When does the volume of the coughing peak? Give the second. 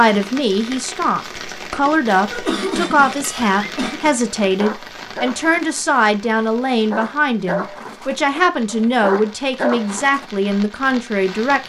3 s.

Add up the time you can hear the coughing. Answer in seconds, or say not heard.
2 s.